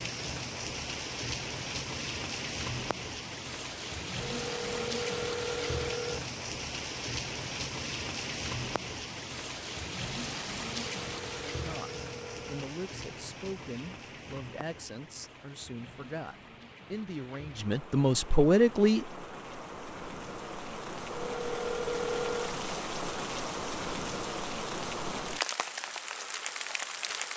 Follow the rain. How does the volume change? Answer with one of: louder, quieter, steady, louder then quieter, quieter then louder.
quieter then louder.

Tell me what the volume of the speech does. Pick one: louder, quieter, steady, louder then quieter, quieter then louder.
louder.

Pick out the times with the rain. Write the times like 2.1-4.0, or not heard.
0.0-27.3.